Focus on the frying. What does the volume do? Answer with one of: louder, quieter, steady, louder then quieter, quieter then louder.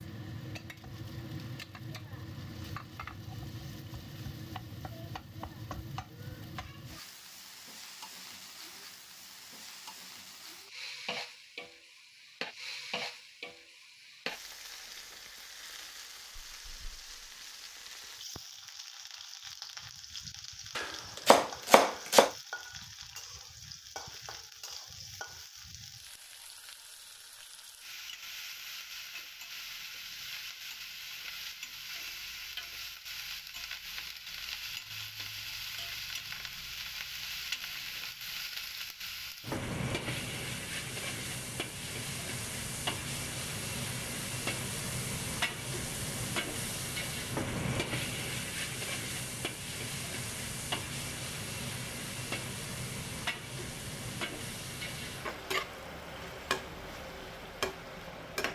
louder.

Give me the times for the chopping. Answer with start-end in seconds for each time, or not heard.
20.8-22.3.